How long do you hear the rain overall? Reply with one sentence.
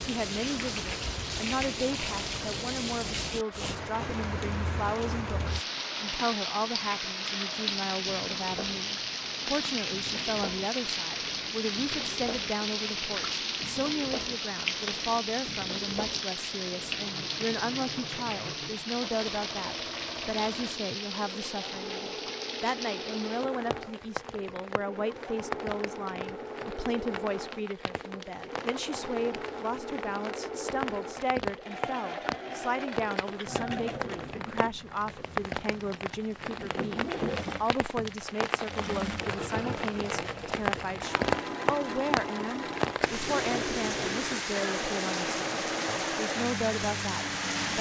You can hear the rain for 48 seconds altogether.